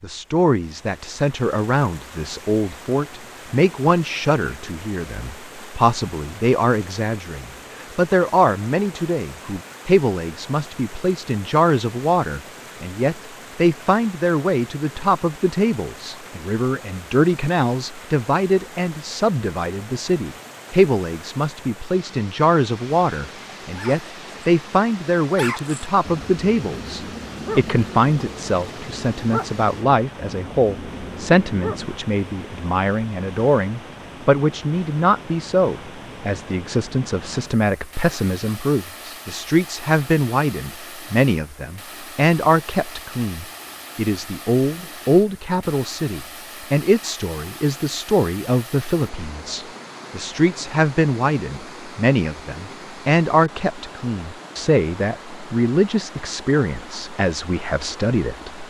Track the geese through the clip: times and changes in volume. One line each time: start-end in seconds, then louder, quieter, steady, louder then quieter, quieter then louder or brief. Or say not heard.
not heard.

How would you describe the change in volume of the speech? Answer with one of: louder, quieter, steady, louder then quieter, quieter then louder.
steady.